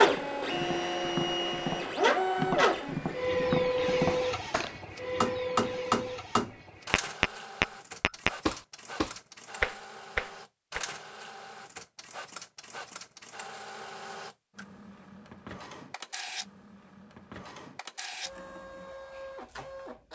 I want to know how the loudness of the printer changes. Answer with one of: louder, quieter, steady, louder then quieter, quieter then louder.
quieter.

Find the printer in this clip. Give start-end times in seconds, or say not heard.
0.0-20.1.